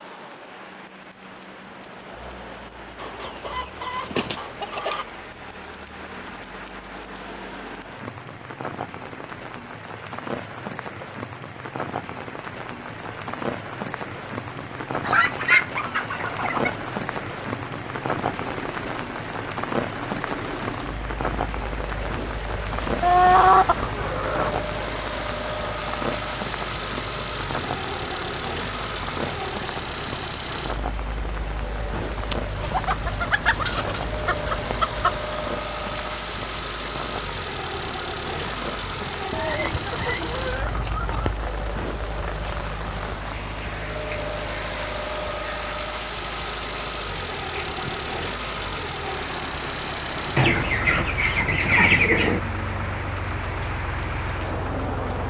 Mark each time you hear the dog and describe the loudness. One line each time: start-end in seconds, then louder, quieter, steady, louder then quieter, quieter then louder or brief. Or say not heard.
not heard.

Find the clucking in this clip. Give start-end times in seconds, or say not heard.
3.0-5.0, 15.0-16.8, 23.0-24.6, 32.3-35.2, 39.3-41.4, 50.4-52.4.